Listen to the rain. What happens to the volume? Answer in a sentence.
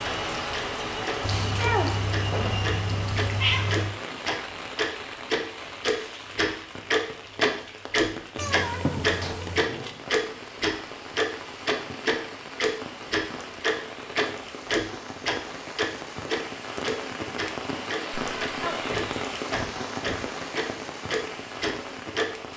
The loudness of the rain goes down, then up.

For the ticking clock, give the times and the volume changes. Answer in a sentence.
You can hear the ticking clock from 0.0 to 22.2 s, getting louder then quieter.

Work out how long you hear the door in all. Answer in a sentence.
You can hear the door for 3 seconds altogether.